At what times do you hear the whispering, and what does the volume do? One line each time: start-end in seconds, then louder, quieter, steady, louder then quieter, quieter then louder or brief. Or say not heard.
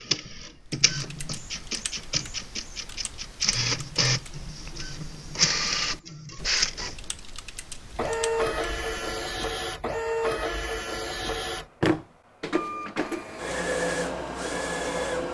not heard.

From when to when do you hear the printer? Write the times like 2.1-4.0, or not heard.
0.0-15.2.